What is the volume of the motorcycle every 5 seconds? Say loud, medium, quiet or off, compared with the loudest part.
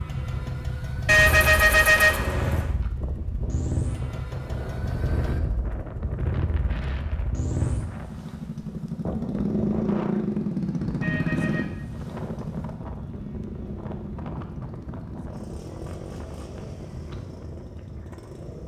loud, loud, loud, quiet.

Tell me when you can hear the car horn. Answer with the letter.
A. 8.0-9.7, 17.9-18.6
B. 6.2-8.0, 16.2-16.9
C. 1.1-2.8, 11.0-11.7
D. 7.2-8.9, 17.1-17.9
C.